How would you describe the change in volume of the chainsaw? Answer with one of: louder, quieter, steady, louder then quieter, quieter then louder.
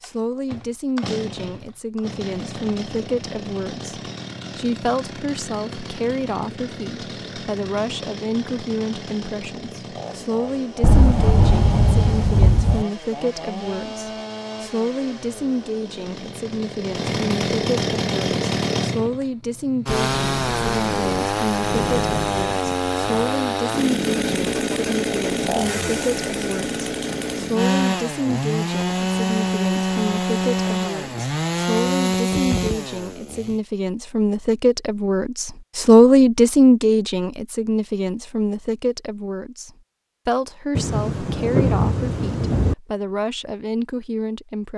louder.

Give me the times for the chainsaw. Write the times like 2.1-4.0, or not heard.
0.0-33.6.